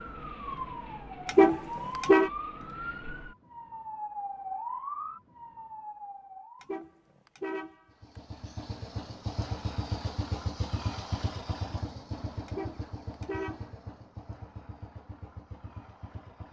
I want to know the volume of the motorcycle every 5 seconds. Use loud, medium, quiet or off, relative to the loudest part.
off, loud, loud, medium.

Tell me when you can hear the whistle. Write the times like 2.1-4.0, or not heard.
not heard.